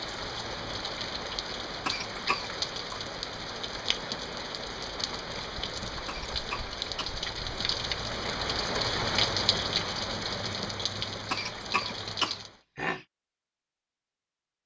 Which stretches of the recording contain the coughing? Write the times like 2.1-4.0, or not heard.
1.9-2.5, 6.0-7.2, 11.3-13.1.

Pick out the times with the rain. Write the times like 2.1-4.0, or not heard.
0.0-12.6.